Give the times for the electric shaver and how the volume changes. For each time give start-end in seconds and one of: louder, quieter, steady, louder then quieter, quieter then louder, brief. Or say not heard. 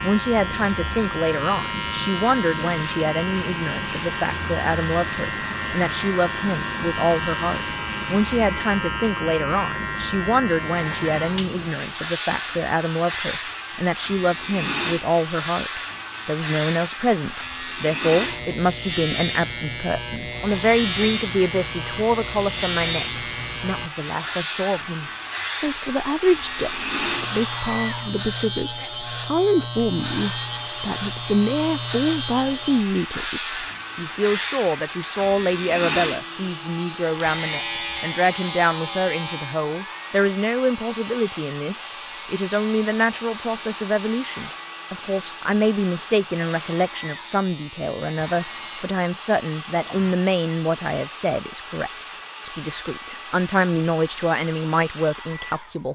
0.0-50.1 quieter.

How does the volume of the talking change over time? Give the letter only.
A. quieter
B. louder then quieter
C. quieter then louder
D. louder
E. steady
E.